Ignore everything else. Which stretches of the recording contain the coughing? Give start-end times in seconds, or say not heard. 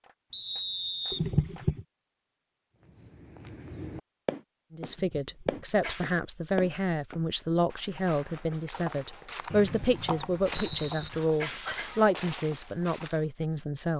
1.1-1.9, 4.9-6.2, 10.6-12.1.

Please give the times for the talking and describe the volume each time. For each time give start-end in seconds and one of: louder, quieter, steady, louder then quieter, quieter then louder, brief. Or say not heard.
4.7-13.9 steady.